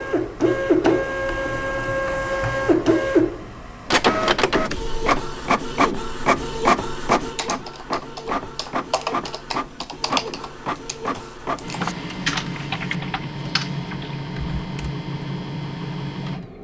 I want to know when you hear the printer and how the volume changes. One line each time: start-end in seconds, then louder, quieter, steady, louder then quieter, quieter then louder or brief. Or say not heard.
0.0-16.5 quieter.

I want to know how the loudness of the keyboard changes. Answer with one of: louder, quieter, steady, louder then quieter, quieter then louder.
louder.